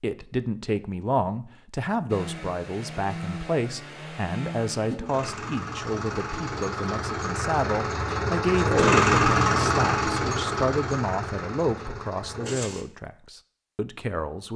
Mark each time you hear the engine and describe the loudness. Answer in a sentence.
The engine can be heard from 2.0 to 12.8 s, getting louder then quieter.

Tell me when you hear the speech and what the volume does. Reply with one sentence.
The speech can be heard from 0.0 to 14.5 s, at a steady volume.